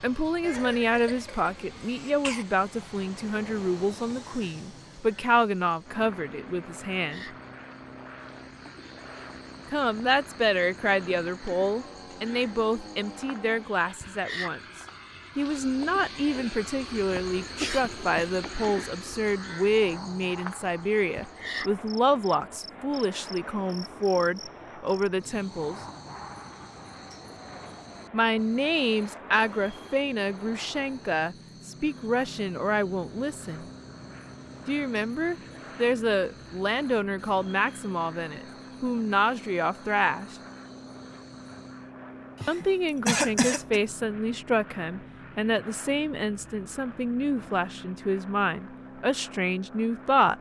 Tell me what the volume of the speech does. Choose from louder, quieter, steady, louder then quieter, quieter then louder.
steady.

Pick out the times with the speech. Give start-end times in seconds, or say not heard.
0.0-7.2, 9.7-14.6, 15.3-25.8, 28.1-33.6, 34.6-40.4, 42.5-50.3.